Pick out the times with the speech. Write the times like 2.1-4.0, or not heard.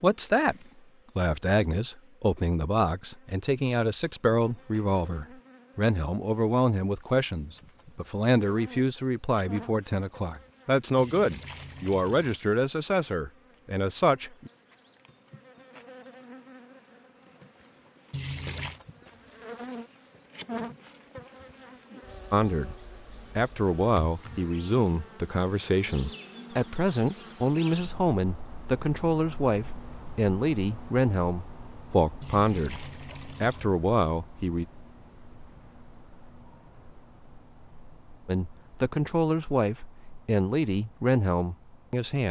0.0-0.6, 1.1-14.5, 22.3-22.8, 23.4-32.8, 33.4-34.6, 38.2-42.2.